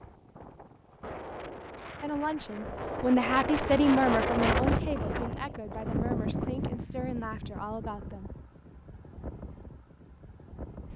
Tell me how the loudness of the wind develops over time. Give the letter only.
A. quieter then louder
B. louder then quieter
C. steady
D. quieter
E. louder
B.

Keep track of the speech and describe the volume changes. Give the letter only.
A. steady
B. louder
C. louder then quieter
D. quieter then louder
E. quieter
E.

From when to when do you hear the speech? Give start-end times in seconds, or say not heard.
2.0-8.3.